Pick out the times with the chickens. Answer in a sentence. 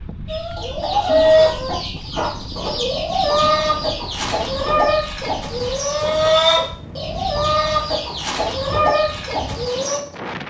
The chickens can be heard from 0.2 to 10.0 s.